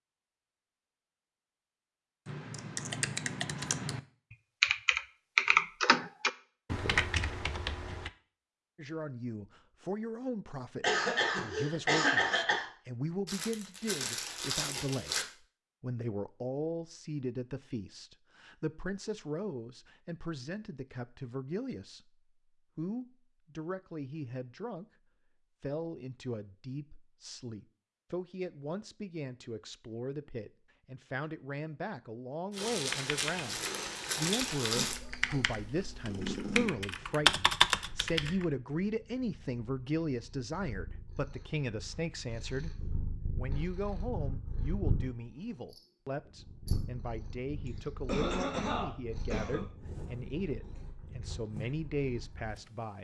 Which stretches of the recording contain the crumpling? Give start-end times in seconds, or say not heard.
13.2-15.2, 33.5-35.0.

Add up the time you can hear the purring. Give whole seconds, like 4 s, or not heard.
20 s.